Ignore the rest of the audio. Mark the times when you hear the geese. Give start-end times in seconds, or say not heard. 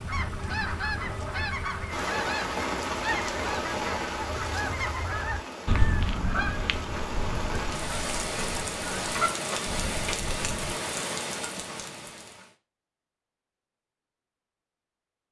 0.1-10.8.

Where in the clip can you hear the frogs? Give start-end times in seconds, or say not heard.
not heard.